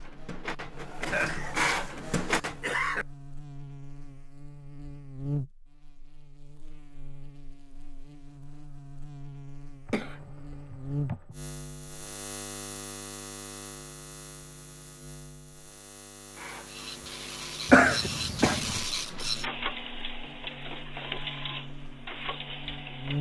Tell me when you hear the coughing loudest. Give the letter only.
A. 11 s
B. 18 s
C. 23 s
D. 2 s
B.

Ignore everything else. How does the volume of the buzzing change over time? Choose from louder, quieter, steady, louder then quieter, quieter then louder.
louder then quieter.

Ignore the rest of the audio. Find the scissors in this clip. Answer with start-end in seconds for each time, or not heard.
not heard.